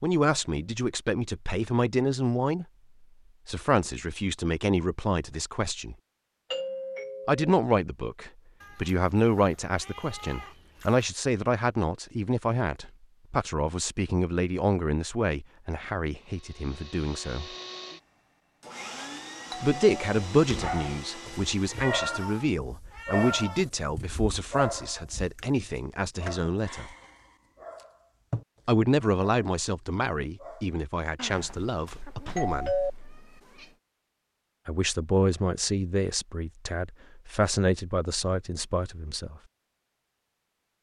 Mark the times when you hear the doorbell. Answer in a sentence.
The doorbell can be heard from 6.5 to 7.5 s, from 19.5 to 20.2 s and from 31.1 to 32.9 s.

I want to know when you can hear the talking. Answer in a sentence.
You can hear the talking from 0.0 to 2.6 s, from 3.5 to 6.0 s, from 7.2 to 17.5 s, from 19.6 to 26.9 s, from 28.6 to 32.8 s and from 34.6 to 39.4 s.